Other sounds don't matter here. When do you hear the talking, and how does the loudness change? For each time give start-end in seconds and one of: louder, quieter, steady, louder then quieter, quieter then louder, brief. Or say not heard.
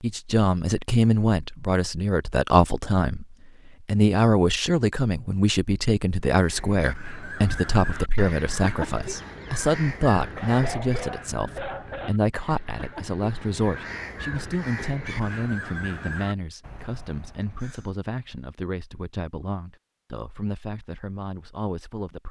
0.0-22.2 quieter.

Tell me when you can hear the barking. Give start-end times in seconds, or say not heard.
10.2-12.1.